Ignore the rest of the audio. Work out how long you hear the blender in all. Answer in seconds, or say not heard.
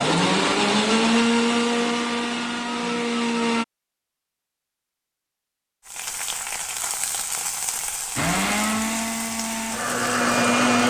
6 s.